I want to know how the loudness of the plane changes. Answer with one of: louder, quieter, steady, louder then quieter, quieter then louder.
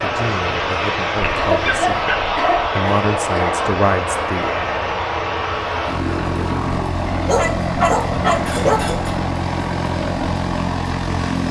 steady.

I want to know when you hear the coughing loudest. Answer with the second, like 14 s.
2 s.